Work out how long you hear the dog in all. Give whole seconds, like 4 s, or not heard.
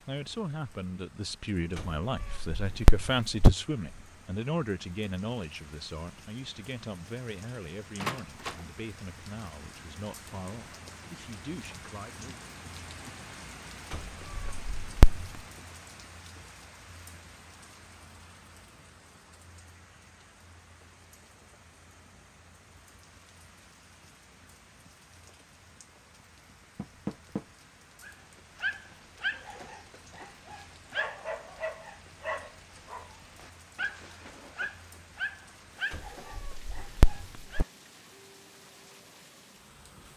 10 s.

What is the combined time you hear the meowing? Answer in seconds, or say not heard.
5 s.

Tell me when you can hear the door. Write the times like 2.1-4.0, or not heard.
8.0-8.7, 26.8-27.4.